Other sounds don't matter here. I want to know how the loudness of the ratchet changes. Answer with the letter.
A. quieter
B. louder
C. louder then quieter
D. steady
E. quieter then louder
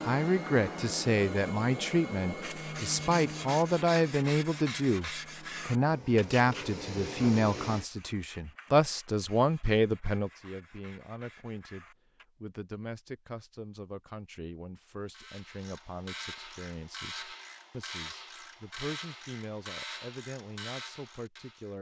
D.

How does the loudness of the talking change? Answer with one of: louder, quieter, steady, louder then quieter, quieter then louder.
quieter.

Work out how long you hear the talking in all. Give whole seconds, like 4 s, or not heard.
22 s.